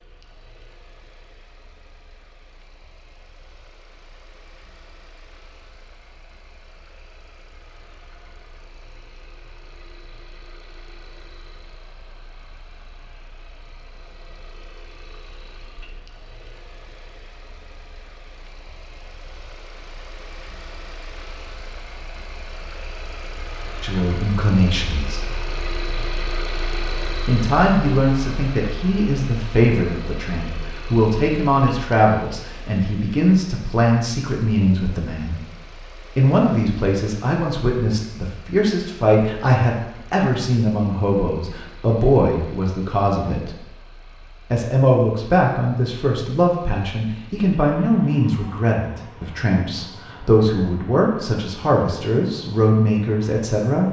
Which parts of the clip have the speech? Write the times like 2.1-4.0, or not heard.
23.8-25.3, 27.2-35.5, 36.1-43.5, 44.5-53.8.